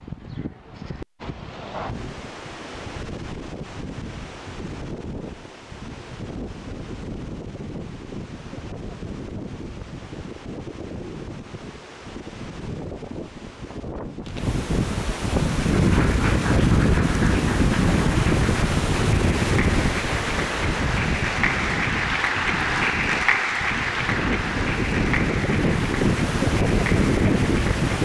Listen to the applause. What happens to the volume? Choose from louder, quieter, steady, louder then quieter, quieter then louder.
louder then quieter.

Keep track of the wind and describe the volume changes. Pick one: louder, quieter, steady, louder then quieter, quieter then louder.
louder.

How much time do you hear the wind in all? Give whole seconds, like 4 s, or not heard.
28 s.